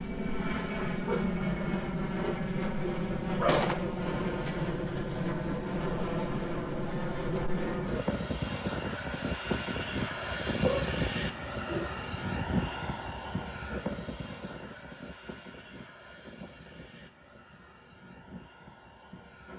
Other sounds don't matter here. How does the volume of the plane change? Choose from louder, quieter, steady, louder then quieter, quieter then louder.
quieter.